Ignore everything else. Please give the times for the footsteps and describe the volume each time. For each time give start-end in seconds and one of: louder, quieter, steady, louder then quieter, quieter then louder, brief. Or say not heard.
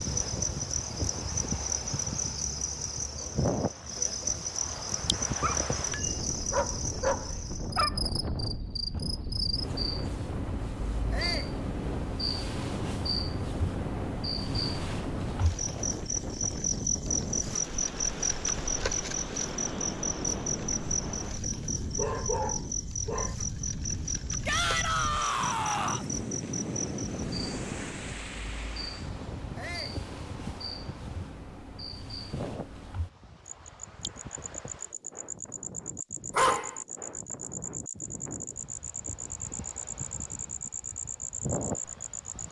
not heard.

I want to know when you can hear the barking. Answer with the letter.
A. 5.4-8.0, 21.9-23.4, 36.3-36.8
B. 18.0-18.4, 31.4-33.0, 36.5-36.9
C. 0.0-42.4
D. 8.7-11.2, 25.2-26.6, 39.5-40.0
A.